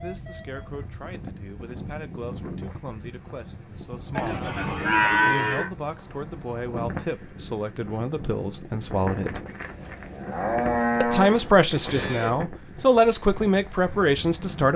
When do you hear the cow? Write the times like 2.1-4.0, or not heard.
4.2-5.7, 9.4-12.4.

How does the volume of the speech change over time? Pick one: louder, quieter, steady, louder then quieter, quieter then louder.
louder.